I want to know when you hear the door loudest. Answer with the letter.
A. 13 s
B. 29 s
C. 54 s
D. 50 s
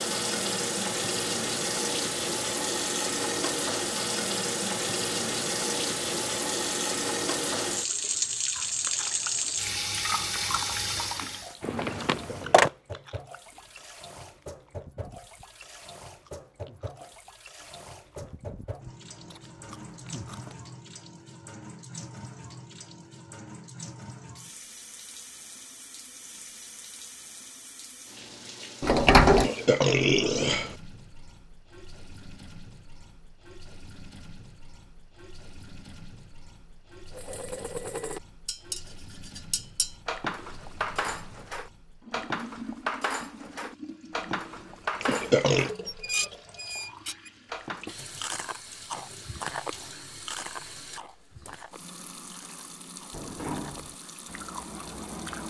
B.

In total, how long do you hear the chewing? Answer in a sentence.
You can hear the chewing for 19 seconds altogether.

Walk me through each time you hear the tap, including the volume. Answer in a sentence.
The tap can be heard from 0.0 to 55.4 s, getting quieter.